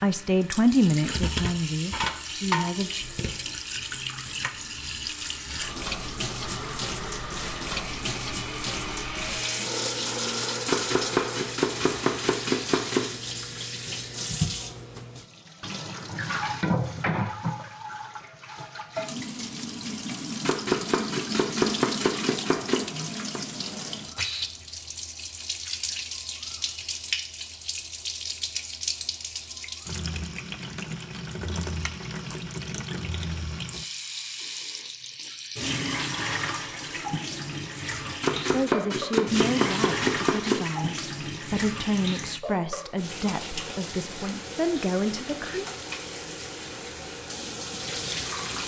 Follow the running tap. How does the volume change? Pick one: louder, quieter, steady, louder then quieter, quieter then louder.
steady.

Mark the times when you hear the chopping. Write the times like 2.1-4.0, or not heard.
10.7-13.4, 20.4-23.4, 38.2-41.0.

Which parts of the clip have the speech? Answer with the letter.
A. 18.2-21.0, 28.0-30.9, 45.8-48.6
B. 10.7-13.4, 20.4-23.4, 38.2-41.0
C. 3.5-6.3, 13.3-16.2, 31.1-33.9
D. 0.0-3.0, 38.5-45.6
D.